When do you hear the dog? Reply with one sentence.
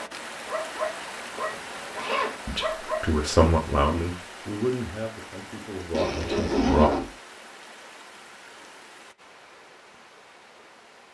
You can hear the dog from 0.0 to 3.0 s.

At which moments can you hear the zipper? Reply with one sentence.
You can hear the zipper from 1.4 to 2.4 s and from 5.9 to 7.1 s.